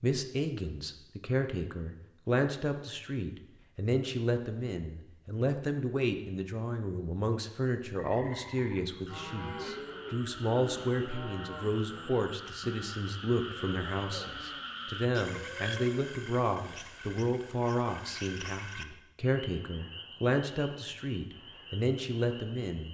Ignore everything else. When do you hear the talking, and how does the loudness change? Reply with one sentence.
The talking can be heard from 0.0 to 22.8 s, at a steady volume.